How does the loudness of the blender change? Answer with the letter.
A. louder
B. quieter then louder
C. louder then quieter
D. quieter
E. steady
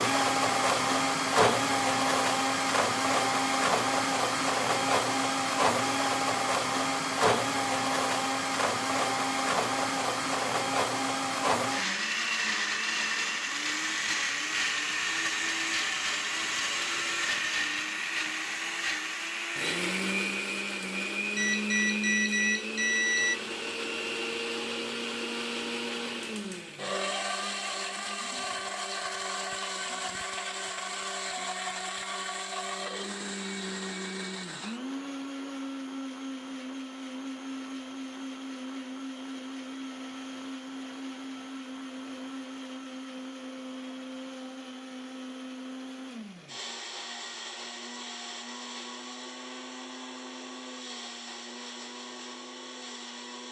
D.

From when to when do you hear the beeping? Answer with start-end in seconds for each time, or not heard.
21.4-23.4.